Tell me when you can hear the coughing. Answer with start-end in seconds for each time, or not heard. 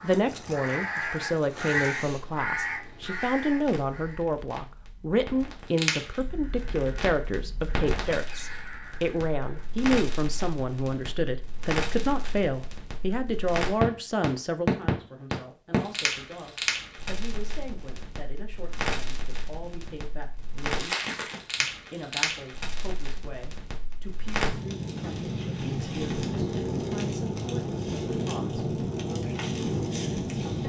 not heard.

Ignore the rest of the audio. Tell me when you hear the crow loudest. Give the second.
2 s.